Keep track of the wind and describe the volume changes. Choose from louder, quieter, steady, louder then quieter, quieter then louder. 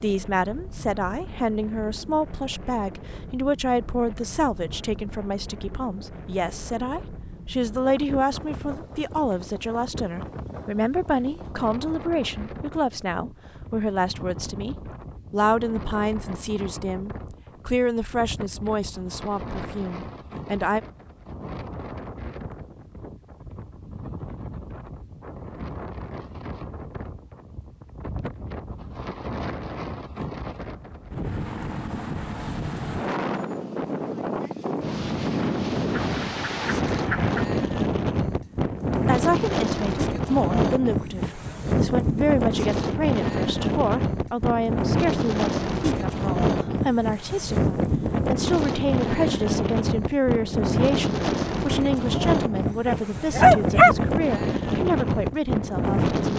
louder.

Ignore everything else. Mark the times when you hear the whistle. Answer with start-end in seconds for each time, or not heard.
not heard.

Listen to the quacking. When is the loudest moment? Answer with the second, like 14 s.
37 s.